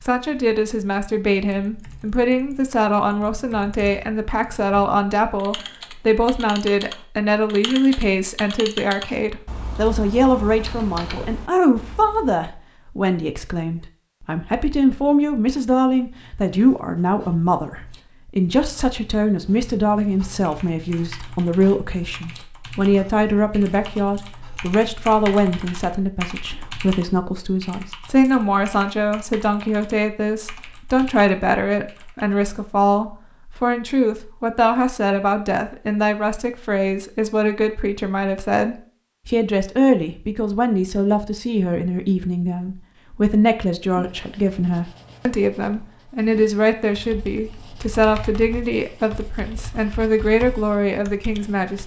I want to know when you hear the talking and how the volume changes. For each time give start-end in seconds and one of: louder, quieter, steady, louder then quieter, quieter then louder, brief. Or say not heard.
0.0-51.8 steady.